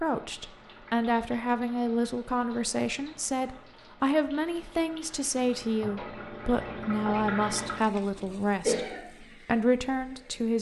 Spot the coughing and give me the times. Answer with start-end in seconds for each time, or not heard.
8.2-9.0.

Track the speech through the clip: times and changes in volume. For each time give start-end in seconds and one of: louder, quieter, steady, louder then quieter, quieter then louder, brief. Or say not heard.
0.0-10.5 steady.